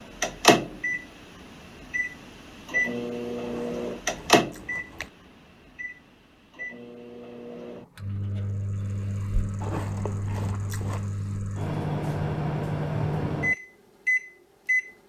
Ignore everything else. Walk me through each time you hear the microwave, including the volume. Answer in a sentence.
You can hear the microwave from 0.0 to 14.9 s, getting quieter then louder.